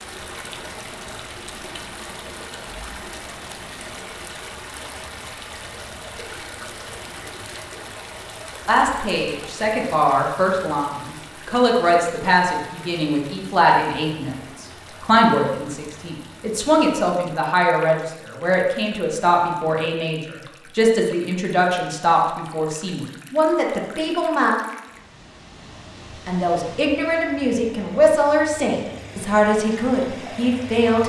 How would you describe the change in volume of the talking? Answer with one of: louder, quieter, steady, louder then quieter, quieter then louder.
steady.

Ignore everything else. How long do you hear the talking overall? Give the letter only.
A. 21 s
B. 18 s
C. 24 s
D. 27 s
A.